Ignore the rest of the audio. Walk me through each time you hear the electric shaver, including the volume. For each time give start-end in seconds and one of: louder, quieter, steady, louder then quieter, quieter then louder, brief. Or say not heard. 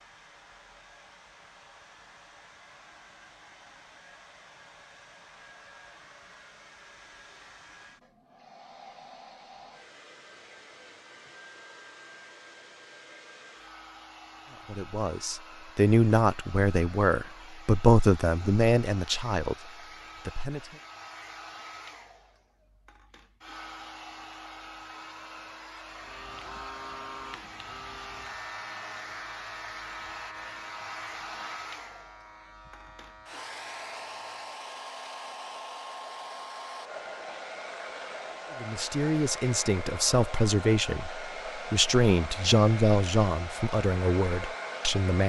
25.9-34.5 quieter.